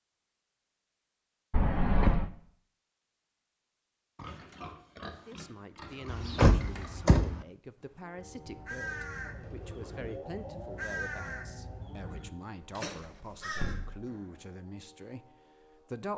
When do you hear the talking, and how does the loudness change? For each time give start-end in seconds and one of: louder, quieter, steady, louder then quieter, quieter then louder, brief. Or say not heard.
5.2-16.1 steady.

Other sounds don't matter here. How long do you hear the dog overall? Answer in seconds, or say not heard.
not heard.